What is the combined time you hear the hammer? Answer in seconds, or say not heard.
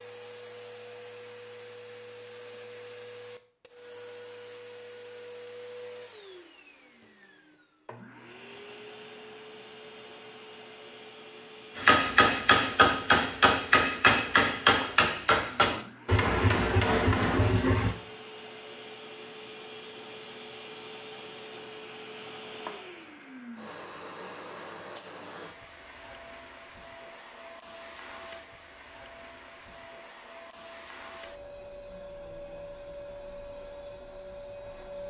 6 s.